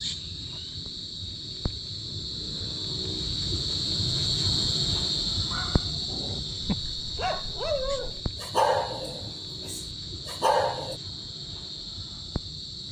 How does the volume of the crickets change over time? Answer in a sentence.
The volume of the crickets goes up, then down.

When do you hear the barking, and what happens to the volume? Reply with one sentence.
The barking can be heard from 5.5 to 10.9 s, getting louder.